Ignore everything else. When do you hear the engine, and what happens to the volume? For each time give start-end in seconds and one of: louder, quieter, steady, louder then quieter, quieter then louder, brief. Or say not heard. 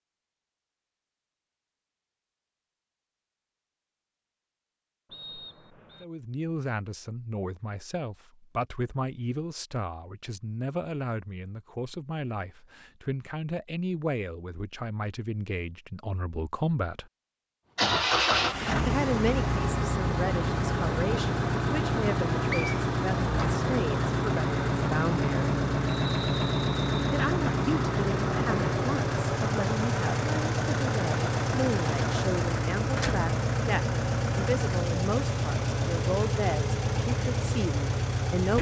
17.8-38.5 steady.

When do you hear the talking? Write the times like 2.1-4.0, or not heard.
6.0-17.1, 18.9-25.5, 27.1-38.5.